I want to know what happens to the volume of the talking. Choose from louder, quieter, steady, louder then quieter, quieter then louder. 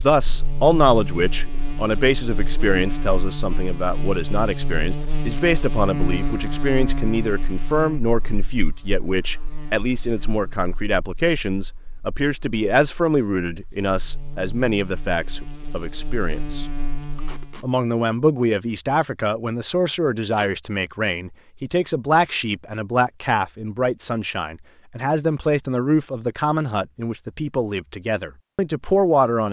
steady.